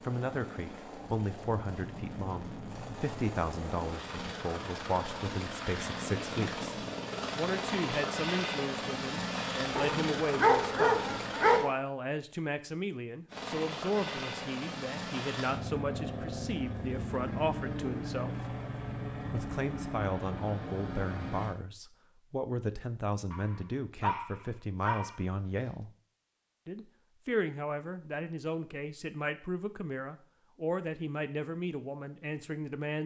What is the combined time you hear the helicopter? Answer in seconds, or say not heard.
20 s.